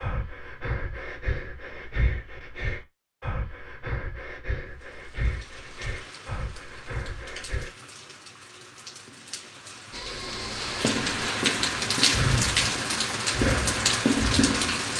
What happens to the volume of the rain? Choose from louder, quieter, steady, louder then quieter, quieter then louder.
louder.